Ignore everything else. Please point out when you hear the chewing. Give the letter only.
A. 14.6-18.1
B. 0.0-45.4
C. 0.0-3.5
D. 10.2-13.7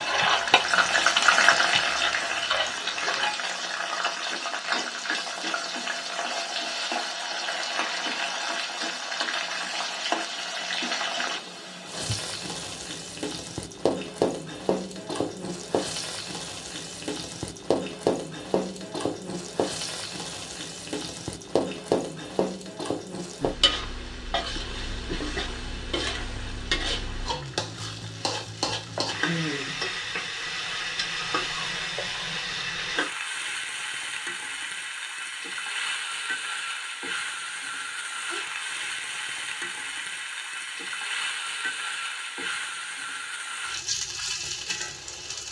C.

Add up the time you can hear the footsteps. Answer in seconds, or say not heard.
not heard.